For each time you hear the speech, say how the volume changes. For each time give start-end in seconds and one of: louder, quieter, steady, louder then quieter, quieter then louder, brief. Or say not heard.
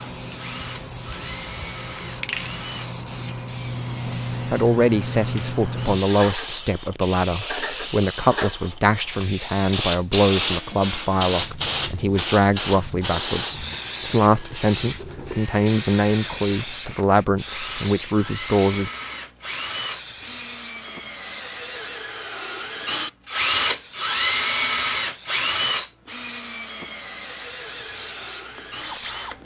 4.5-18.9 steady.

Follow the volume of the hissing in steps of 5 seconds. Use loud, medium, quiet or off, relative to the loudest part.
medium, loud, loud, medium, quiet, quiet.